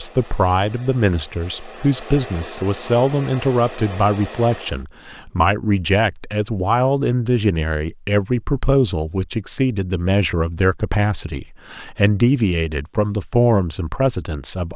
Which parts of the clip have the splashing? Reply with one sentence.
You can't hear the splashing here.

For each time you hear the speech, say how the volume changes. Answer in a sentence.
You can hear the speech from 0.0 to 14.7 s, at a steady volume.